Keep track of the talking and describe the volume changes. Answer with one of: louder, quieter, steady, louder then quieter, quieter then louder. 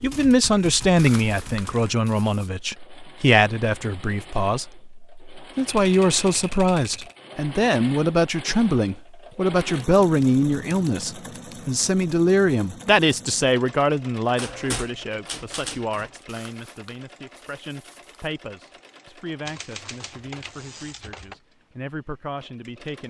quieter.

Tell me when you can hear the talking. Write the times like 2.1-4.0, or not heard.
0.0-23.0.